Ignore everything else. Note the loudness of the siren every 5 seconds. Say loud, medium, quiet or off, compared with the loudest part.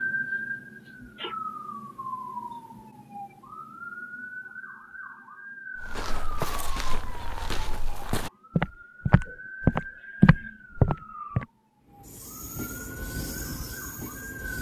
loud, medium, medium.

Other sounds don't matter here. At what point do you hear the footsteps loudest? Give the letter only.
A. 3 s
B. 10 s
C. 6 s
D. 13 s
B.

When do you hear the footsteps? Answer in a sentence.
You can hear the footsteps from 5.8 to 11.4 s.